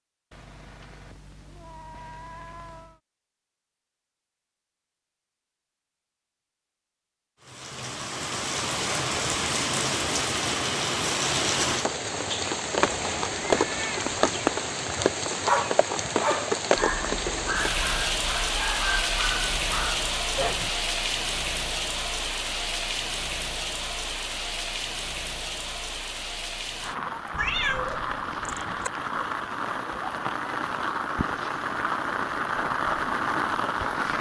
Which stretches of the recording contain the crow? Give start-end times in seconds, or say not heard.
not heard.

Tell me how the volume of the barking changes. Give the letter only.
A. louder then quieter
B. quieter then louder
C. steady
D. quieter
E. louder
D.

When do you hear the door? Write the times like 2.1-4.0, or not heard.
not heard.